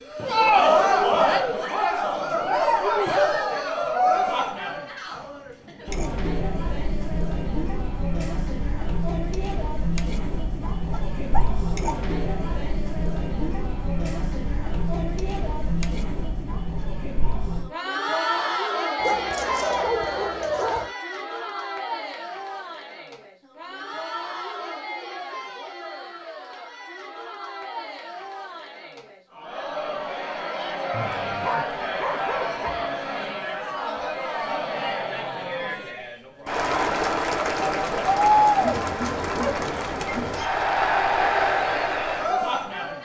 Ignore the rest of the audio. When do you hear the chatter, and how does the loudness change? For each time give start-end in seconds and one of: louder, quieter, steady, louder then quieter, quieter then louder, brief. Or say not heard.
0.0-43.0 quieter then louder.